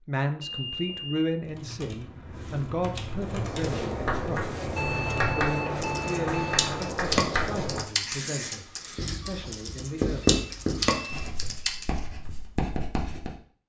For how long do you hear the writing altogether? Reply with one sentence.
The writing can be heard for 10 seconds in total.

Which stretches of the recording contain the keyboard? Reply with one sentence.
The keyboard can be heard from 1.4 to 12.0 s.